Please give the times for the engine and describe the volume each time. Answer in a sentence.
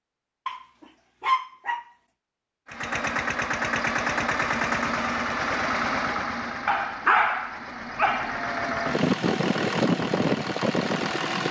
You can hear the engine from 2.6 to 11.4 s, getting quieter then louder.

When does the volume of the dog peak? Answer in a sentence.
The volume of the dog peaks at 7 seconds.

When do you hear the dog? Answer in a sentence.
The dog can be heard from 0.5 to 1.9 s and from 6.7 to 8.4 s.